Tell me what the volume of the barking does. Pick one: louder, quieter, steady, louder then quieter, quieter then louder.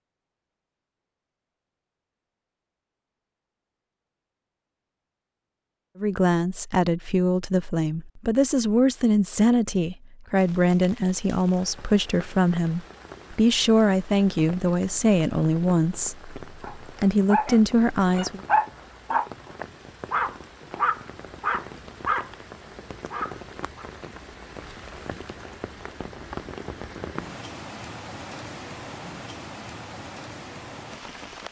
louder then quieter.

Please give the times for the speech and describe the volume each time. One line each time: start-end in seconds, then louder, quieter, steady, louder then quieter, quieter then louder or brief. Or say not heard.
6.0-18.4 steady.